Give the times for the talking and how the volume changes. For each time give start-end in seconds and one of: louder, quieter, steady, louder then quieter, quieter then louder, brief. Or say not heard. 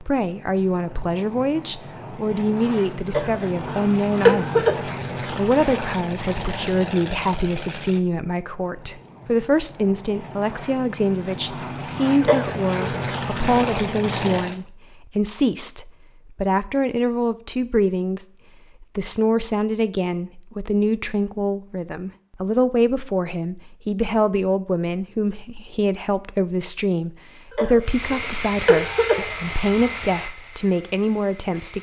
0.0-31.7 steady.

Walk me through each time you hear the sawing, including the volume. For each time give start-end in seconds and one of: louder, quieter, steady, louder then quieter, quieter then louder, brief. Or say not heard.
not heard.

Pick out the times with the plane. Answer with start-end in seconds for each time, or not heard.
0.0-14.6, 27.8-31.7.